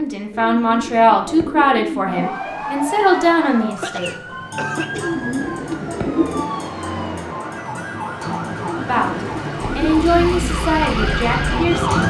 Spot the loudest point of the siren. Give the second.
12 s.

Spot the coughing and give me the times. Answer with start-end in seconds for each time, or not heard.
3.8-5.8.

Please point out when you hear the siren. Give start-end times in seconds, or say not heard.
2.0-12.0.